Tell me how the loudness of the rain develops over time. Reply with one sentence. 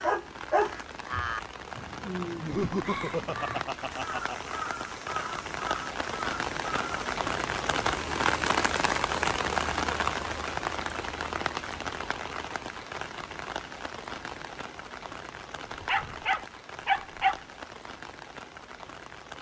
The volume of the rain goes up, then down.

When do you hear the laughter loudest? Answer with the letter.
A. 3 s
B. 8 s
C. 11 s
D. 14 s
A.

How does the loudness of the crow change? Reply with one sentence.
The volume of the crow stays about the same.